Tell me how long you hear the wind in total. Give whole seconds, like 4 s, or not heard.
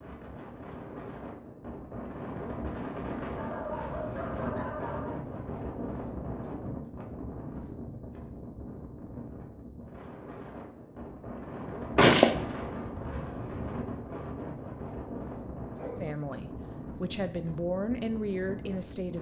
19 s.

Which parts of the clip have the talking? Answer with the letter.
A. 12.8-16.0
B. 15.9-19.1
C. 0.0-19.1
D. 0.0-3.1
B.